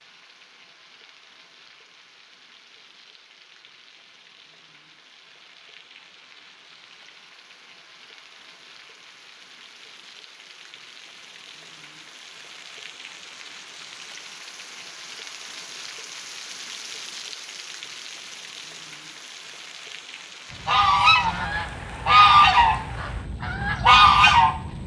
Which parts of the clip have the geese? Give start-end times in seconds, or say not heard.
20.6-24.8.